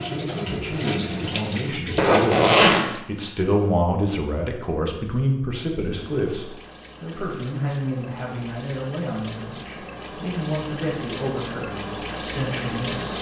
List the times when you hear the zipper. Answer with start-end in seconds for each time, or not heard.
1.9-3.0.